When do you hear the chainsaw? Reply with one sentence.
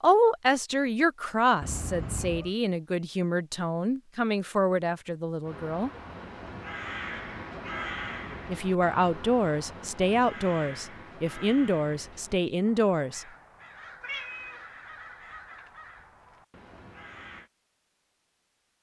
You can't hear the chainsaw here.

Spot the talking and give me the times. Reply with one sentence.
The talking can be heard from 0.0 to 5.9 s and from 8.4 to 13.2 s.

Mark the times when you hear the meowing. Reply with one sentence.
You can hear the meowing from 1.6 to 2.5 s and from 14.0 to 14.7 s.